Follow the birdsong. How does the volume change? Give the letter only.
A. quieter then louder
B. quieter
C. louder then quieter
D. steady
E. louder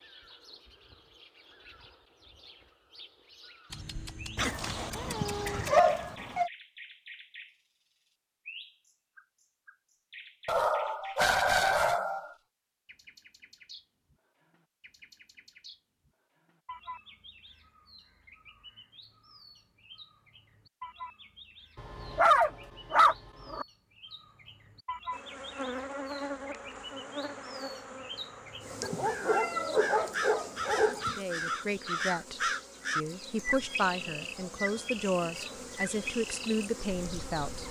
E.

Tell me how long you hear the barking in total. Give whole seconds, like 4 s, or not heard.
8 s.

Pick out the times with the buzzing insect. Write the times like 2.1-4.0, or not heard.
25.1-37.6.